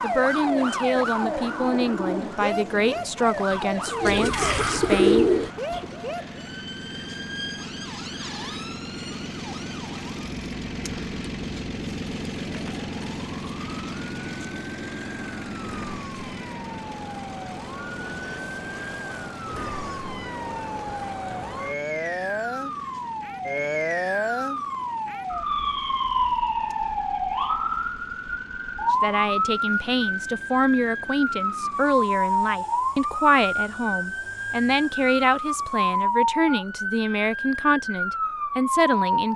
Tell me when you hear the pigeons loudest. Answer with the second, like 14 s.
5 s.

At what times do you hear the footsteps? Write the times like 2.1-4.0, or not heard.
not heard.